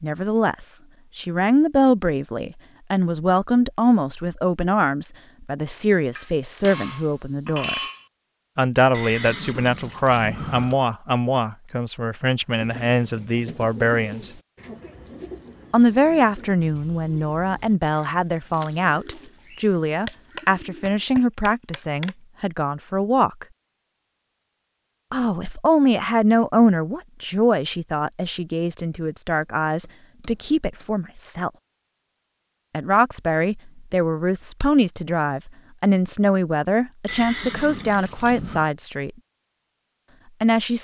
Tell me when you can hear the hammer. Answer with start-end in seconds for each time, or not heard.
6.2-8.1, 20.1-22.1, 29.4-30.9.